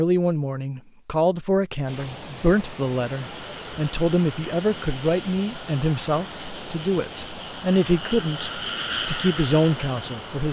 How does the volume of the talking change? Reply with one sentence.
The volume of the talking stays about the same.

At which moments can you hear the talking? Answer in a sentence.
You can hear the talking from 0.0 to 10.4 s.